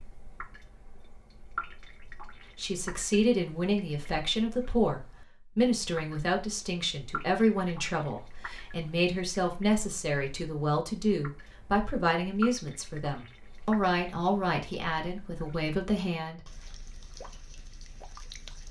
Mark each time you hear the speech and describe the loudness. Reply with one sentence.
You can hear the speech from 2.5 to 16.5 s, at a steady volume.